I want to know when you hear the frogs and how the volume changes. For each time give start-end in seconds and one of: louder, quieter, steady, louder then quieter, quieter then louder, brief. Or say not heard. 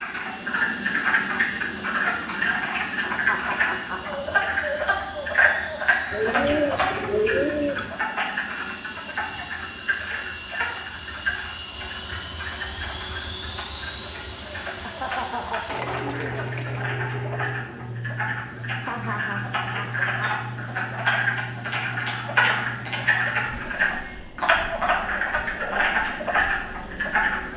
0.0-27.5 quieter then louder.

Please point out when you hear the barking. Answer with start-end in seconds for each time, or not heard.
not heard.